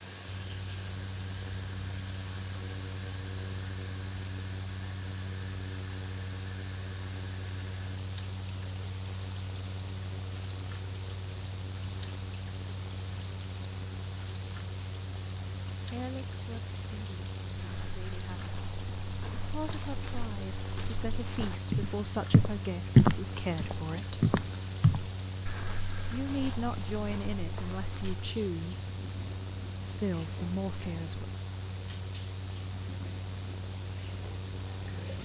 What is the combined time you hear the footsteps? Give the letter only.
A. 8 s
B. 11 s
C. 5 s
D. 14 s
B.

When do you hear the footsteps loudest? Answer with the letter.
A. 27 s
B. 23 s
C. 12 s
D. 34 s
B.